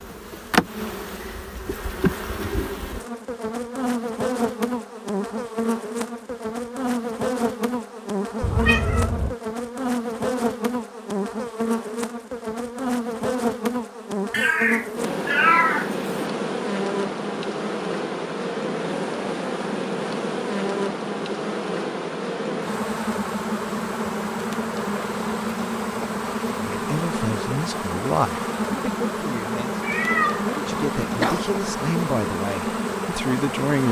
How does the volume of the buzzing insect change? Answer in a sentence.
The loudness of the buzzing insect stays about the same.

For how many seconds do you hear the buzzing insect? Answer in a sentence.
The buzzing insect can be heard for 34 seconds in total.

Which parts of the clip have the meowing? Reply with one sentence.
The meowing can be heard from 8.4 to 9.3 s, from 14.3 to 16.3 s and from 29.8 to 31.4 s.